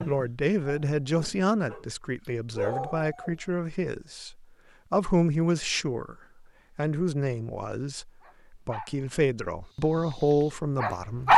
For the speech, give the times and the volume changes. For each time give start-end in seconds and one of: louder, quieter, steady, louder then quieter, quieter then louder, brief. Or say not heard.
0.1-6.2 quieter then louder
6.8-11.3 quieter then louder.